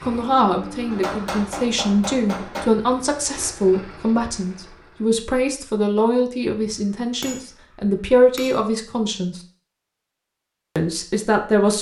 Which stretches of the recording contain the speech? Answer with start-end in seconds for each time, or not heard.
0.0-9.4, 10.8-11.7.